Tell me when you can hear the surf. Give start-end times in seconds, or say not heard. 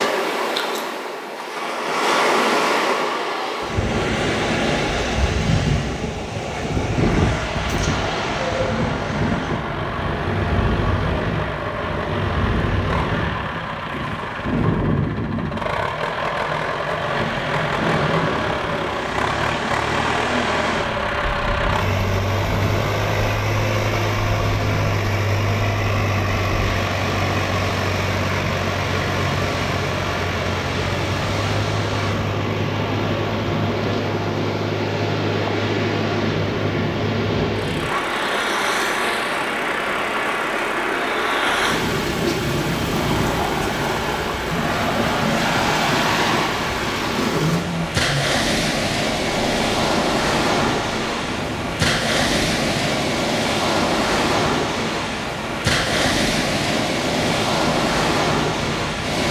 0.0-59.2.